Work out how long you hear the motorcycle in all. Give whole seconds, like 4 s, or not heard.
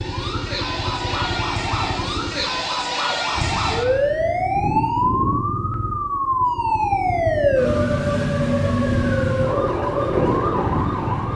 11 s.